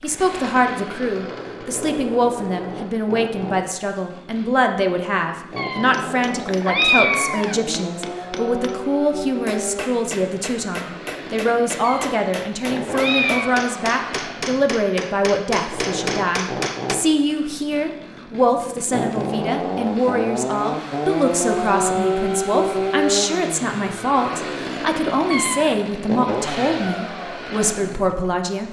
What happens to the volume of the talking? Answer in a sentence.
The loudness of the talking stays about the same.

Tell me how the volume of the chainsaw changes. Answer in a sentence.
The loudness of the chainsaw goes up.